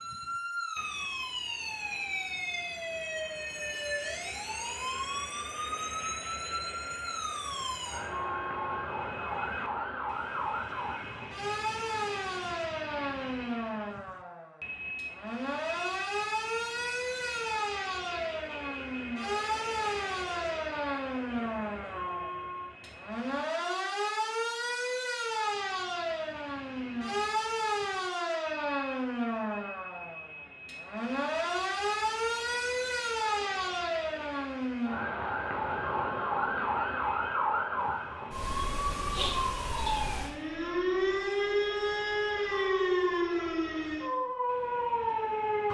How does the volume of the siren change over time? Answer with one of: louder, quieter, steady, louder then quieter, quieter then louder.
louder.